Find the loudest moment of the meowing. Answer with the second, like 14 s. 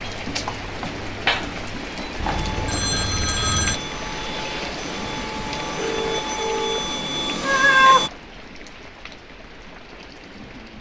8 s.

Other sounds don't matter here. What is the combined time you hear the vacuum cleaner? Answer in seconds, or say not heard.
6 s.